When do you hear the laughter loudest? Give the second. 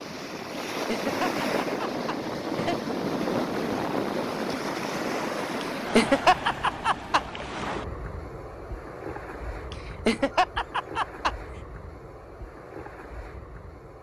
6 s.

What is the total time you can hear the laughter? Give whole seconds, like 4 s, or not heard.
5 s.